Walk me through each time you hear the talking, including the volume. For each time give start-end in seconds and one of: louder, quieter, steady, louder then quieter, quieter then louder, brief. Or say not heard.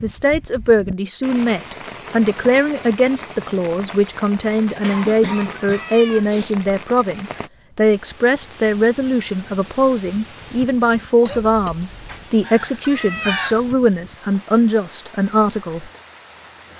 0.0-15.9 steady.